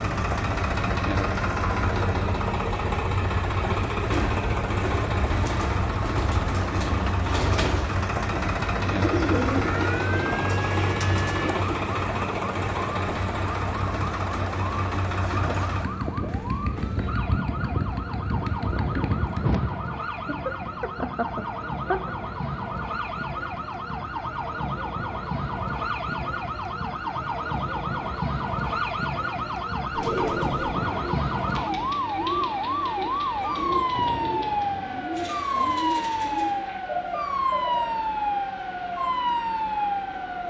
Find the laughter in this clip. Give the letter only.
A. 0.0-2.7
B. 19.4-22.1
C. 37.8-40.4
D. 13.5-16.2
B.